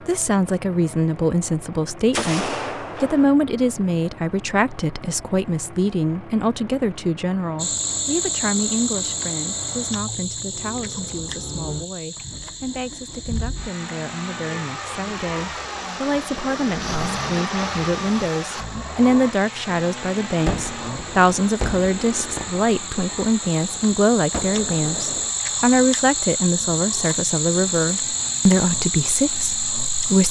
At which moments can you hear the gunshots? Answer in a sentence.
The gunshots can be heard from 2.1 to 3.2 s and from 20.4 to 25.3 s.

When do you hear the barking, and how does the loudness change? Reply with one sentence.
The barking can't be heard in this clip.